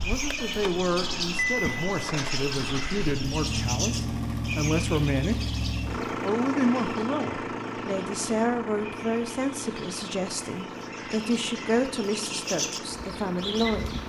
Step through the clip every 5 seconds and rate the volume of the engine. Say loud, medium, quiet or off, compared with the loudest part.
loud, loud, medium.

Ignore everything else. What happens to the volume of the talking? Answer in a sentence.
The volume of the talking stays about the same.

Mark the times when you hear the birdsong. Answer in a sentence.
The birdsong can be heard from 0.0 to 14.0 s.